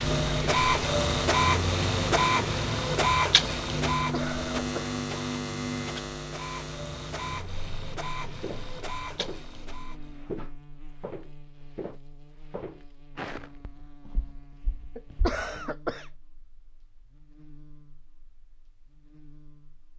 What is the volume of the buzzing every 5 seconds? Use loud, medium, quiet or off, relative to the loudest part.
loud, medium, quiet, quiet.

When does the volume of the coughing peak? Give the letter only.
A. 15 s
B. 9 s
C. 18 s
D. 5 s
A.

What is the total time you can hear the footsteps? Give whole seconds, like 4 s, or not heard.
7 s.